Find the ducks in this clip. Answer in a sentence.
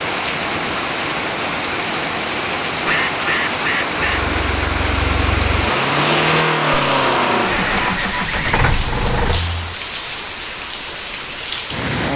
You can hear the ducks from 2.6 to 4.2 s.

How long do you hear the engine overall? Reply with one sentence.
You can hear the engine for 6 seconds altogether.